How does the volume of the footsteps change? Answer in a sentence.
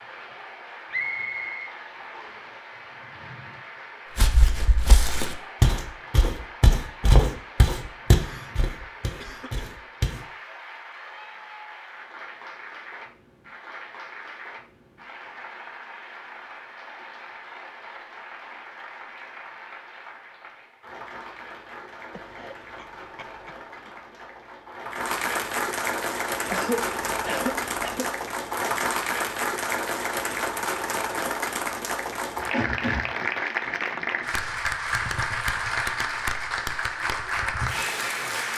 The volume of the footsteps goes up, then down.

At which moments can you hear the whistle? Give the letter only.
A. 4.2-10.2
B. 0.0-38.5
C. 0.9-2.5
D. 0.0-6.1
C.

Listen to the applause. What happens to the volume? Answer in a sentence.
The loudness of the applause goes up.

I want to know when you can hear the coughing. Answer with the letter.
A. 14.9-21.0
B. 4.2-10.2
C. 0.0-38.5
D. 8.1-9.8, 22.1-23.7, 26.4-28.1
D.